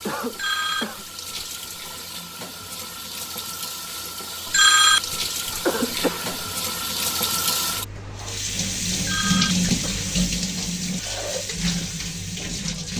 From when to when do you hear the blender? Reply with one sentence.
The blender can't be heard in this clip.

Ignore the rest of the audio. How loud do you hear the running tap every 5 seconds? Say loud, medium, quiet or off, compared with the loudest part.
medium, loud, loud.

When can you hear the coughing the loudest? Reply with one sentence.
The loudest moment of the coughing is at 6 seconds.